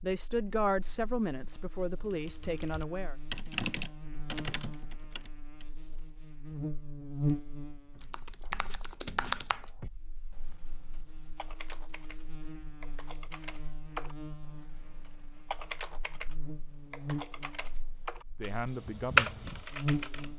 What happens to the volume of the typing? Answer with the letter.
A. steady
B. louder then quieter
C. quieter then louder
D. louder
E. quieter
C.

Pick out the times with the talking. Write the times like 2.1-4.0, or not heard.
0.0-3.1, 18.4-20.3.